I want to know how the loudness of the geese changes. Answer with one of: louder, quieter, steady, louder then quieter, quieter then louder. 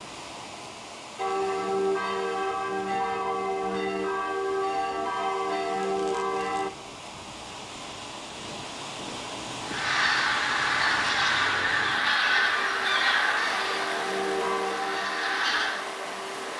quieter.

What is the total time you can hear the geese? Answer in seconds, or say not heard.
6 s.